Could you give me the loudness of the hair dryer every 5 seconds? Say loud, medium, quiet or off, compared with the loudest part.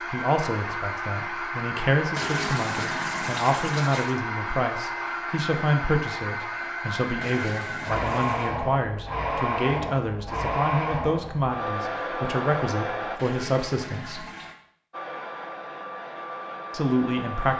loud, loud, loud, medium.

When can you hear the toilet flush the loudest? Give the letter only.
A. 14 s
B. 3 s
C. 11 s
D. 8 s
B.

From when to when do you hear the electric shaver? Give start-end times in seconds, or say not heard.
not heard.